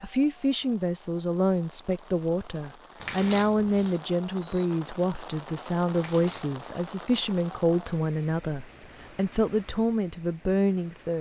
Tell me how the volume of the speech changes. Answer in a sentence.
The loudness of the speech stays about the same.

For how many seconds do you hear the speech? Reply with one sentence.
You can hear the speech for 11 seconds altogether.